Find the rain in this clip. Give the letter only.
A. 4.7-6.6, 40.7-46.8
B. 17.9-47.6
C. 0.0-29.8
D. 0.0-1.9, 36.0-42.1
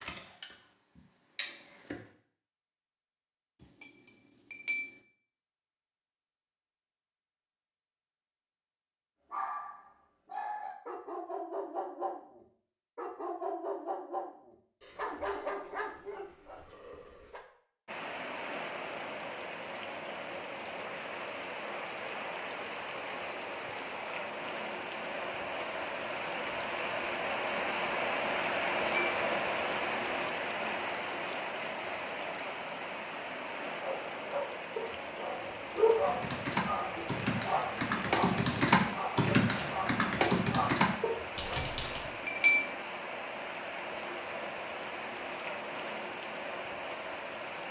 B.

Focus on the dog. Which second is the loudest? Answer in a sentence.
The volume of the dog peaks at 36 seconds.